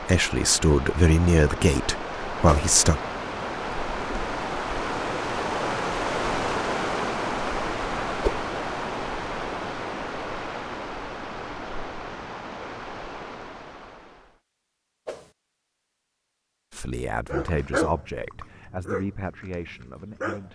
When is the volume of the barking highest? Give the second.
18 s.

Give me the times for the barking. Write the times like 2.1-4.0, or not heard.
17.2-20.5.